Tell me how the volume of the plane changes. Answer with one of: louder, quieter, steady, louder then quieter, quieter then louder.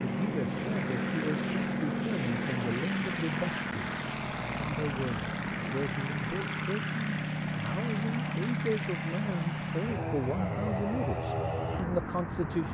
steady.